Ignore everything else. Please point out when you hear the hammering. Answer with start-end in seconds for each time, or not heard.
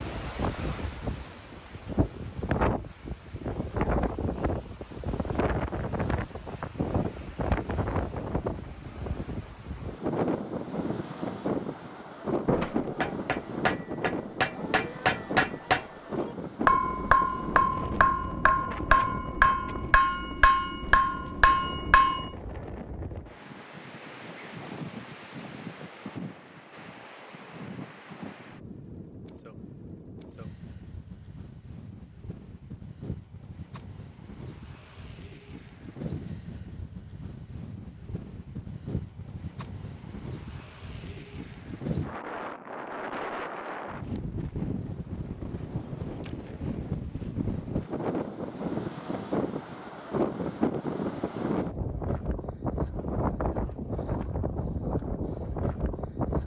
12.4-22.3.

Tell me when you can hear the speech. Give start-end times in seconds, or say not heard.
not heard.